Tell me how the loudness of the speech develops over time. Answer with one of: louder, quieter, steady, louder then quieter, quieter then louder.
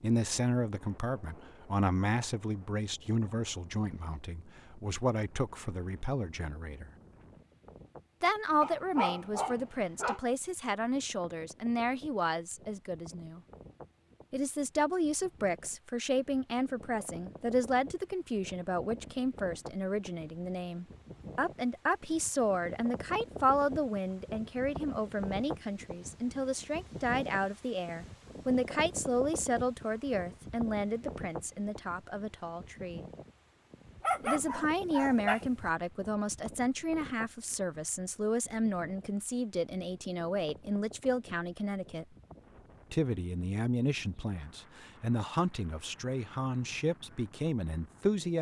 steady.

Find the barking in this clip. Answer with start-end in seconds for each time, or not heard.
8.6-10.2, 34.0-35.7.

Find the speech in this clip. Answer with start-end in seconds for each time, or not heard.
0.0-6.9, 8.2-13.4, 14.3-33.0, 34.2-42.0, 42.9-48.3.